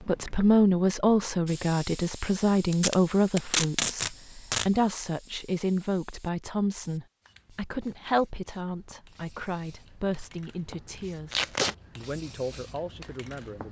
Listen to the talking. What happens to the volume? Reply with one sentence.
The loudness of the talking goes down.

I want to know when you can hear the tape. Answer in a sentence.
You can hear the tape from 2.7 to 4.7 s and from 11.3 to 11.8 s.